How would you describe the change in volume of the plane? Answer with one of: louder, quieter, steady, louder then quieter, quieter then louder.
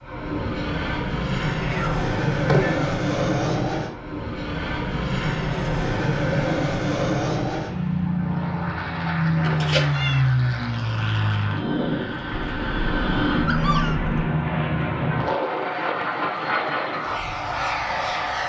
steady.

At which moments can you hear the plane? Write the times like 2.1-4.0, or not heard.
0.0-18.4.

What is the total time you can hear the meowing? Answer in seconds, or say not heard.
4 s.